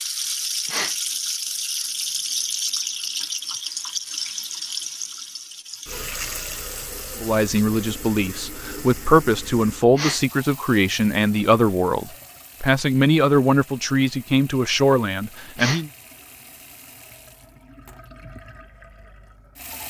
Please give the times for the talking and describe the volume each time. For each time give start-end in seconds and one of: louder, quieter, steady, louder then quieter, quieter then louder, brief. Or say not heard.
7.2-15.9 steady.